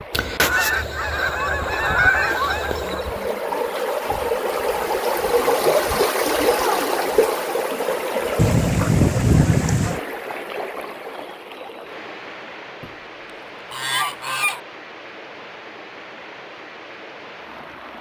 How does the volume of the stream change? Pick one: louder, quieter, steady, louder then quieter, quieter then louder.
louder then quieter.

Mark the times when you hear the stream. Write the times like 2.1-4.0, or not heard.
0.0-17.9.